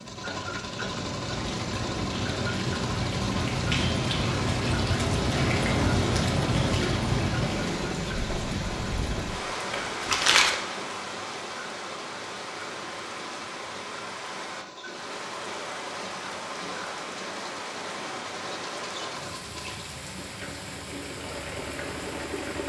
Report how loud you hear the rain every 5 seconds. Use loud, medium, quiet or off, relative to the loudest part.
loud, loud, medium, medium, quiet.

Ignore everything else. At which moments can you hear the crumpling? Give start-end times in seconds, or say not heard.
9.7-10.6.